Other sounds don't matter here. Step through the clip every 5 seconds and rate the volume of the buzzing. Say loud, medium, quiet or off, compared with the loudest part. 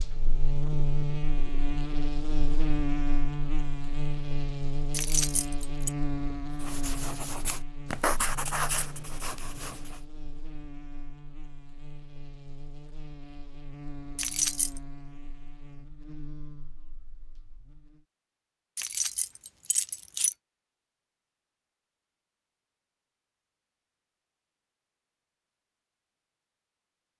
loud, medium, quiet, quiet, off, off.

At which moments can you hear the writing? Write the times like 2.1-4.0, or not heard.
6.6-10.0.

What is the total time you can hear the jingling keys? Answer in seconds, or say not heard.
3 s.